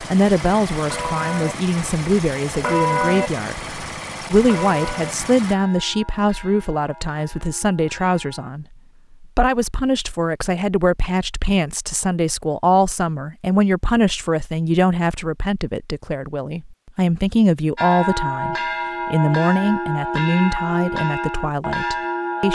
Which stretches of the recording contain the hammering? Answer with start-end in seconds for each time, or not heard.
not heard.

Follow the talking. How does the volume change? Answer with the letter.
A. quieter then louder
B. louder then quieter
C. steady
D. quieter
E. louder
C.